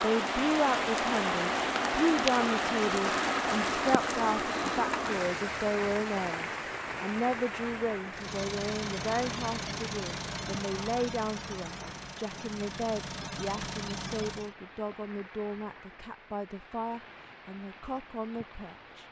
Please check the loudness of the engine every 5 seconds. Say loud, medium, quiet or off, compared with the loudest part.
off, loud, loud, off.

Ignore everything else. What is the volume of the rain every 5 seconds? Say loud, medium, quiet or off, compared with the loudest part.
loud, medium, quiet, quiet.